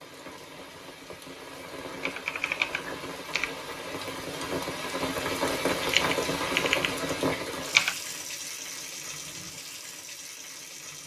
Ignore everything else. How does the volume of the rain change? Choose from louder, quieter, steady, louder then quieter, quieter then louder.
louder then quieter.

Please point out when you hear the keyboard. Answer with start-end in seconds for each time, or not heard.
2.0-3.5, 5.8-8.0.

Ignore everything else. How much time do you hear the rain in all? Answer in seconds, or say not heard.
11 s.